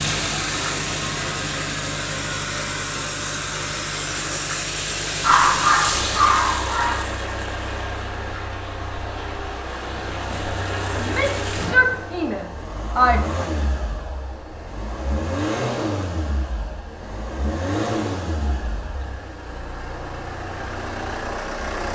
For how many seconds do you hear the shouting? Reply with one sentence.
The shouting can be heard for 2 seconds in total.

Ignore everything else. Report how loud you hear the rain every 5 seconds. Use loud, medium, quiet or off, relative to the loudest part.
loud, loud, loud, off, off.